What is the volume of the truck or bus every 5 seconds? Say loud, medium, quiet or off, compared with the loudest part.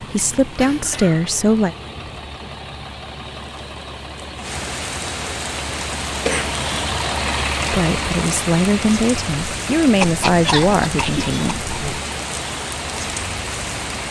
medium, loud, medium.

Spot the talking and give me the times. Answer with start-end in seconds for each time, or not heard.
0.0-1.8, 7.7-11.6.